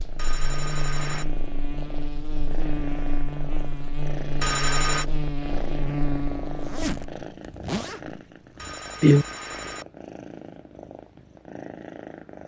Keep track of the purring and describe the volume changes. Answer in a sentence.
The loudness of the purring goes up, then down.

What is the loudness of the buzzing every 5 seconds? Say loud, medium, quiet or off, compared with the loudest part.
loud, loud, off.